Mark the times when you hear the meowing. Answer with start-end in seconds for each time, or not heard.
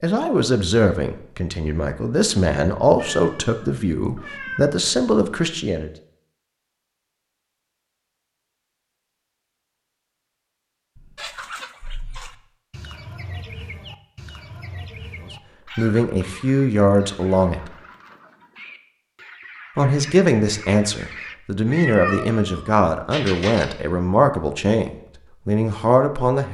3.0-4.6, 10.9-12.3, 21.6-23.6.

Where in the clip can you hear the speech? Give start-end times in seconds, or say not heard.
0.0-5.9, 15.8-17.8, 19.8-26.4.